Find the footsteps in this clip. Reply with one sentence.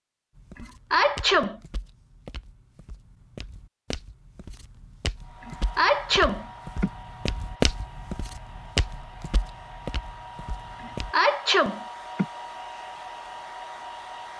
The footsteps can be heard from 0.3 to 11.2 s.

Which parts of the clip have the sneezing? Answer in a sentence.
You can hear the sneezing from 0.6 to 1.6 s, from 5.5 to 6.9 s and from 10.8 to 12.2 s.